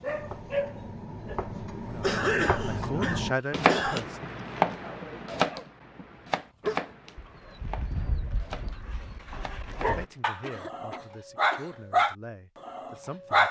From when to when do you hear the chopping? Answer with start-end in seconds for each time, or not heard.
0.0-10.2.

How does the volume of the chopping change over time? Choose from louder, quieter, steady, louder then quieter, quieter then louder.
louder then quieter.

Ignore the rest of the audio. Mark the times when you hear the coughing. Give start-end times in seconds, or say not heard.
2.0-4.0, 10.4-11.8.